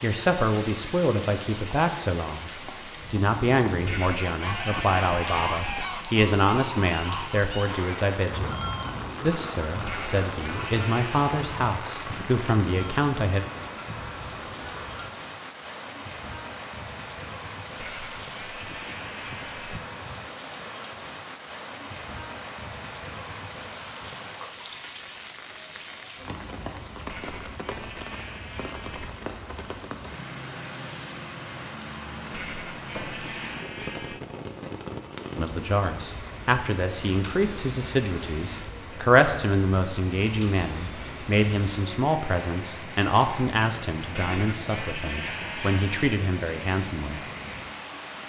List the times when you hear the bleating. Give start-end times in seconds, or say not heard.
3.9-5.9, 9.8-11.3, 17.8-19.8, 27.1-29.1, 32.3-34.2, 44.1-46.1.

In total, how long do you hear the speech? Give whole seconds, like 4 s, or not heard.
25 s.